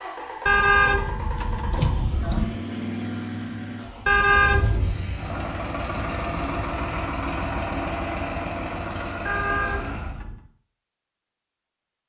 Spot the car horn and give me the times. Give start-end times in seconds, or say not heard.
0.5-2.5, 4.0-5.0, 9.2-10.4.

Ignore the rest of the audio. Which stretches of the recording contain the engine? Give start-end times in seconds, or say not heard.
0.0-10.2.